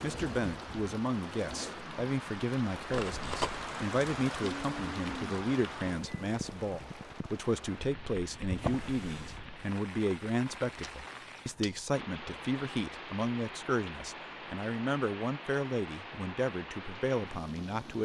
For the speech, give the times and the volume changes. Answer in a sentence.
The speech can be heard from 0.0 to 18.0 s, at a steady volume.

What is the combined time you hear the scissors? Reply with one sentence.
The scissors can be heard for 2 seconds in total.